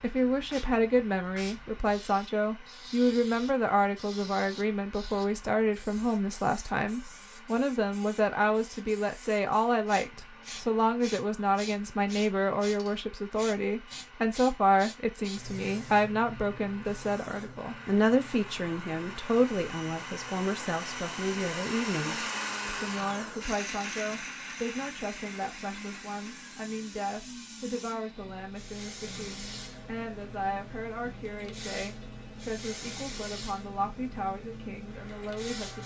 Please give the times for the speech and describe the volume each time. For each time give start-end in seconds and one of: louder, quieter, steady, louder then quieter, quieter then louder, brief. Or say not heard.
0.0-35.8 quieter.